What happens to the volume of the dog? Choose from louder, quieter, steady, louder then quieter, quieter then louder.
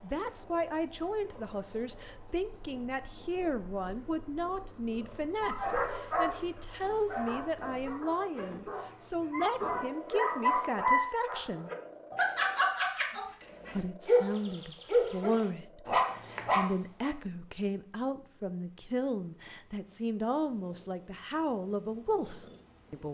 louder.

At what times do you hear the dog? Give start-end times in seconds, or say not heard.
5.4-17.1.